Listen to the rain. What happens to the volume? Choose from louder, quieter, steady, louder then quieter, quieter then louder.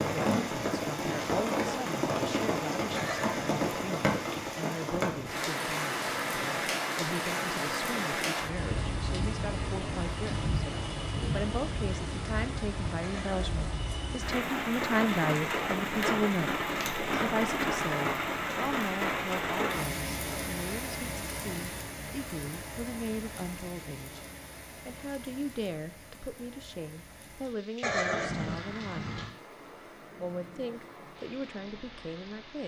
quieter.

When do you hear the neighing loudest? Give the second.
28 s.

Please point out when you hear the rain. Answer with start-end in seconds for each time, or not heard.
0.0-32.6.